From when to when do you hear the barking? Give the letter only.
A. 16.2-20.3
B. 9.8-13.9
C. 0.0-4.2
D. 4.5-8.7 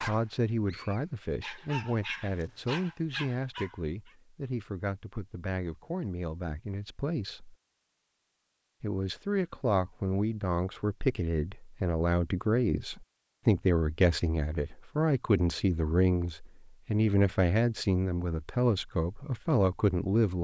C.